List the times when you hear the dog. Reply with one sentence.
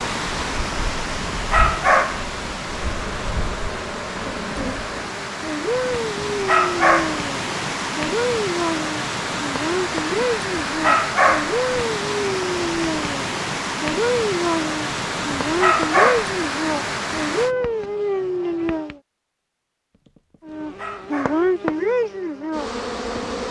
You can hear the dog from 0.8 to 2.2 s, from 6.0 to 7.2 s, from 10.1 to 11.6 s, from 14.8 to 16.4 s and from 20.1 to 21.4 s.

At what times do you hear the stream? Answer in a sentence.
You can hear the stream from 0.0 to 17.6 s.